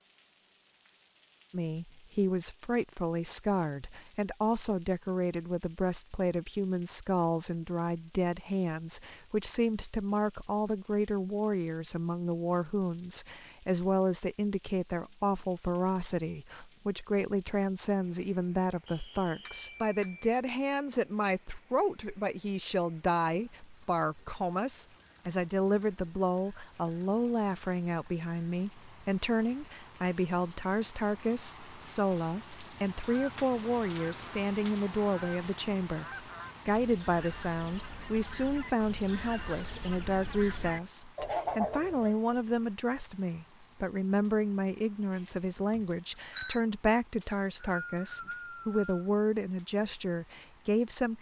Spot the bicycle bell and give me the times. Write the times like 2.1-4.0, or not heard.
19.4-20.4, 45.1-46.6.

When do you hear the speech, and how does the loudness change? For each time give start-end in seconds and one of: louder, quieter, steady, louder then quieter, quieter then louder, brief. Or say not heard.
1.5-51.1 steady.